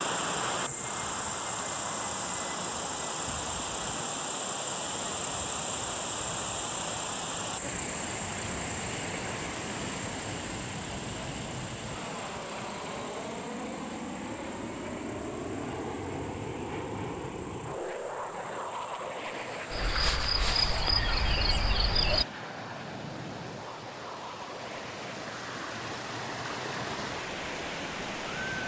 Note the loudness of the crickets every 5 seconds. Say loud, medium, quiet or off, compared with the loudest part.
medium, medium, quiet, quiet, loud, off.